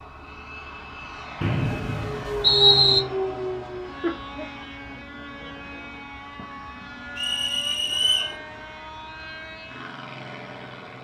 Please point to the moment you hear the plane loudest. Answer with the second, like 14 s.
3 s.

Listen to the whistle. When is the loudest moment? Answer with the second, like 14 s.
3 s.